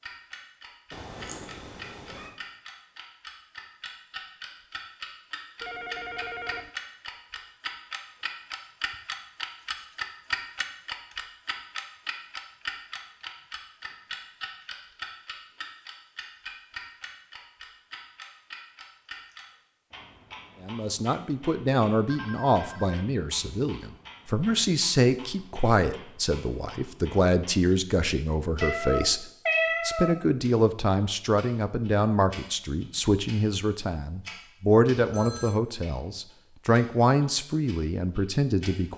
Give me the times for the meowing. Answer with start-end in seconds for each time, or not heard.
0.9-2.3, 28.6-30.1.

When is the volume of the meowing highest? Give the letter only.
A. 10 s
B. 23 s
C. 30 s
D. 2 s
C.